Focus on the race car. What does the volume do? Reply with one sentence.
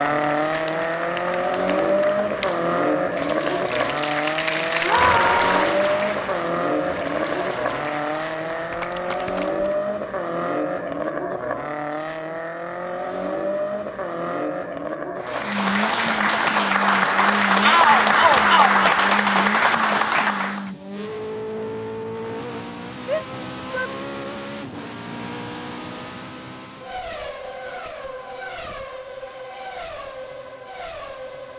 The loudness of the race car goes down.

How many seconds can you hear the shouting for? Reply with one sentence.
You can hear the shouting for 3 seconds altogether.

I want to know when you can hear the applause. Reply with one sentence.
You can hear the applause from 0.0 to 9.7 s and from 15.2 to 20.7 s.